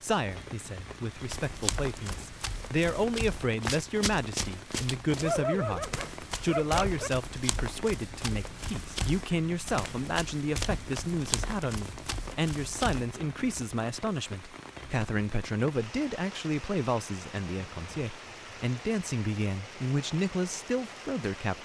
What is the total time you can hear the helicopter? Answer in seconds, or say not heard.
not heard.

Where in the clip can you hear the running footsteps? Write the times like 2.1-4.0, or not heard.
1.1-13.1.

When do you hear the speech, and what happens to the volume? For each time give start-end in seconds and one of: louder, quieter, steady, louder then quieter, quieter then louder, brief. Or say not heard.
0.0-21.5 steady.